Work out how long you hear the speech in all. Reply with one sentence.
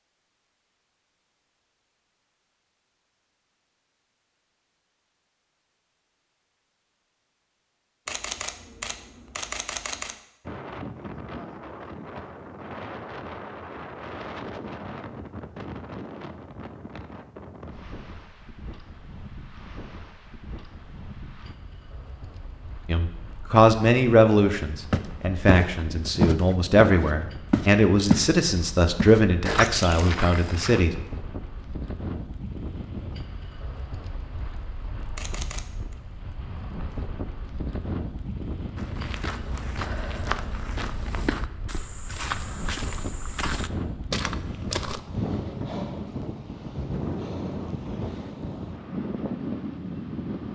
You can hear the speech for 8 seconds altogether.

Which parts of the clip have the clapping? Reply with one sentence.
You can't hear the clapping here.